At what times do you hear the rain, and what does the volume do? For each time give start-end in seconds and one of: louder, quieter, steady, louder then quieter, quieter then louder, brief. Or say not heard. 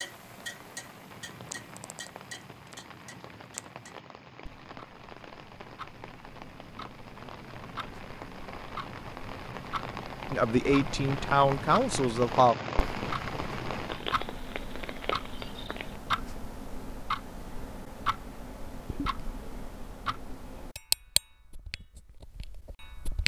0.0-16.0 louder.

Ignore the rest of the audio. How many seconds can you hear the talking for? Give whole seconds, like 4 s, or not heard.
2 s.